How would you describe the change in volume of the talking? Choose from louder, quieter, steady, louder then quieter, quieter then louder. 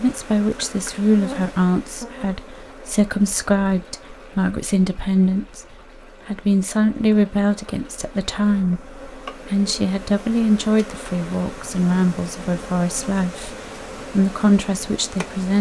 steady.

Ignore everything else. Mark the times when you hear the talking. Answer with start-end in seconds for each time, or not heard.
0.0-15.5.